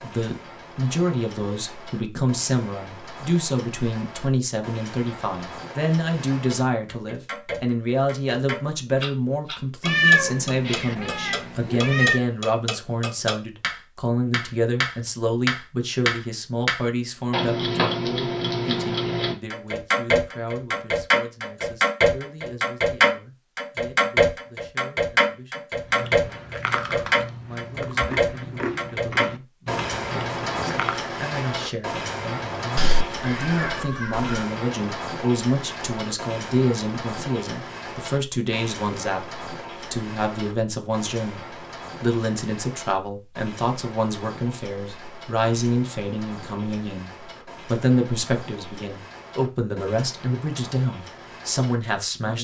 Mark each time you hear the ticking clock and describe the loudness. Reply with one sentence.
The ticking clock can be heard from 0.0 to 52.3 s, getting louder then quieter.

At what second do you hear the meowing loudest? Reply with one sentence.
The loudest moment of the meowing is at 10 seconds.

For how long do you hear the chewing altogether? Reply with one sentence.
The chewing can be heard for 5 seconds in total.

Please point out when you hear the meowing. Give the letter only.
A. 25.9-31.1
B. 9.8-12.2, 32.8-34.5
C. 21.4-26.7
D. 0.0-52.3
B.